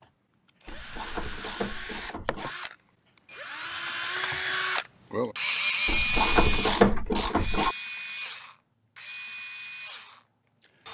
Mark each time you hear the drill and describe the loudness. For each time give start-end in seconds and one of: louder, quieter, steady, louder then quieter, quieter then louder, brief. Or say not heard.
0.0-10.8 louder then quieter.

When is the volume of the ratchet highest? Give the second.
7 s.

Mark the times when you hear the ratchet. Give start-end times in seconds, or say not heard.
0.7-2.5, 5.8-7.8.